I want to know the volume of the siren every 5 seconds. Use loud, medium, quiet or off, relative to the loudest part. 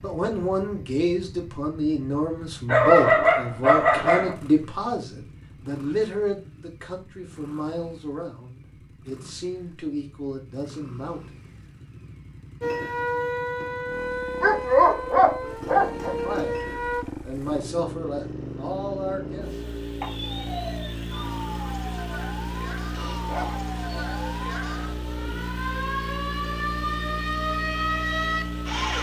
off, off, loud, loud, medium, loud.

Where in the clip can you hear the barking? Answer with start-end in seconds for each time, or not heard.
2.6-4.3, 14.4-16.1, 22.9-24.3.